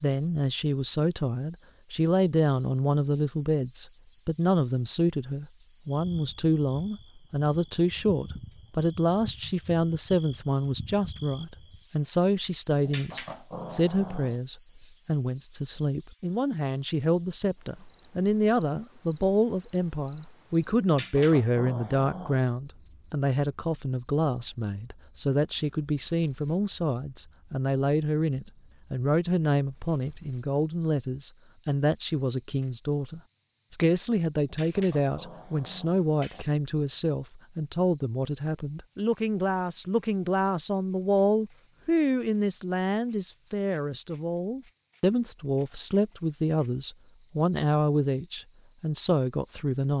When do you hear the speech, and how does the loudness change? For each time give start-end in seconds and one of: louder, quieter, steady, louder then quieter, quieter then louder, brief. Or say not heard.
0.0-49.9 steady.